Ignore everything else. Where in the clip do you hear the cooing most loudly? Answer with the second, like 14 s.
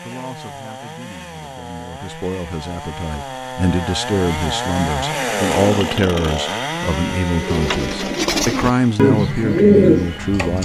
10 s.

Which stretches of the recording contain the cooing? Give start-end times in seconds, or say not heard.
7.3-10.6.